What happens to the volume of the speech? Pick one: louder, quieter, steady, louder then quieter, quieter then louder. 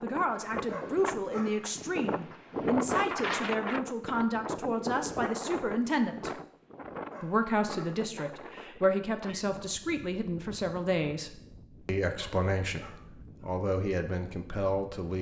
steady.